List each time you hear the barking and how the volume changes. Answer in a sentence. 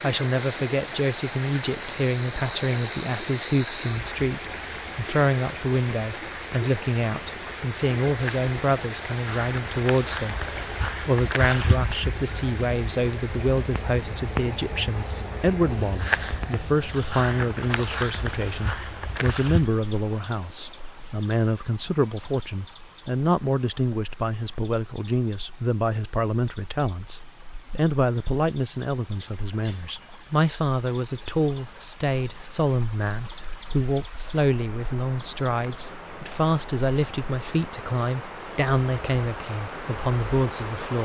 You can't hear the barking here.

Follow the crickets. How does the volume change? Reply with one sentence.
The volume of the crickets goes up, then down.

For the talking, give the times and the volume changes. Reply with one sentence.
The talking can be heard from 0.0 to 40.9 s, at a steady volume.